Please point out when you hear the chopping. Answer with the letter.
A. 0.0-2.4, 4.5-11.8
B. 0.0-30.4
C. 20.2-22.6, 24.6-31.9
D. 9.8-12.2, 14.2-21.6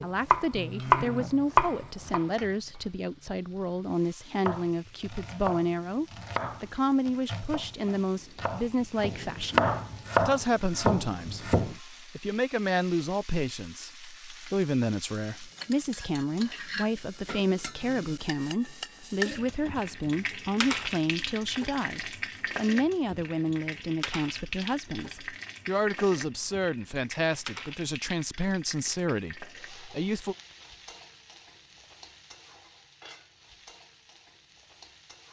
A.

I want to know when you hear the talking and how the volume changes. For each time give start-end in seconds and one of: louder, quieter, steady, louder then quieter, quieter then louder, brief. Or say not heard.
0.0-30.4 steady.